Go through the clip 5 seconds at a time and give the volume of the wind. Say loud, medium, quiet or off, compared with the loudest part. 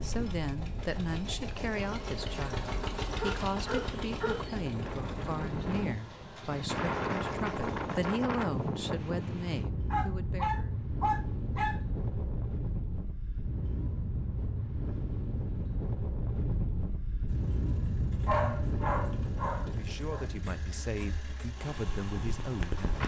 medium, loud, loud, loud, medium.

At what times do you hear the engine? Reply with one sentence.
You can hear the engine from 0.0 to 8.2 s and from 17.2 to 23.0 s.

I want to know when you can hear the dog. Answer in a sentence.
The dog can be heard from 3.1 to 4.5 s, from 9.9 to 11.8 s and from 18.2 to 20.2 s.